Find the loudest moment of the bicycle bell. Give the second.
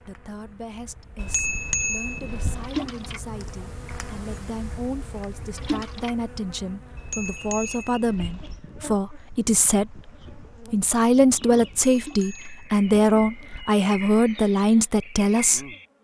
2 s.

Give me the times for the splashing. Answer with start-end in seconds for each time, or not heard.
2.6-3.2, 5.5-6.2, 11.9-12.5.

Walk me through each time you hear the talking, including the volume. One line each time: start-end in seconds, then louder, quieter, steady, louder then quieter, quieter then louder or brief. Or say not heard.
0.0-15.7 louder.